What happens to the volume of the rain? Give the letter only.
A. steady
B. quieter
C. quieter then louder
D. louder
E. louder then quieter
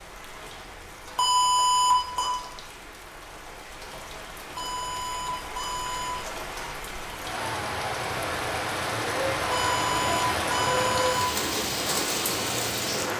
D.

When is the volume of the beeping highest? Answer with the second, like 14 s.
2 s.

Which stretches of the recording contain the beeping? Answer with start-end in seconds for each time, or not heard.
1.1-2.3, 4.5-6.2, 9.5-11.2.